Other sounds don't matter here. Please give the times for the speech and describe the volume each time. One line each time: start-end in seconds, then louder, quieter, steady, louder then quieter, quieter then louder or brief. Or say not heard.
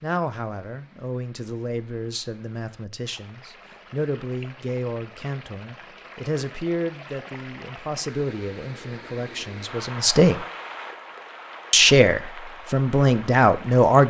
0.0-10.3 steady
11.7-14.0 brief.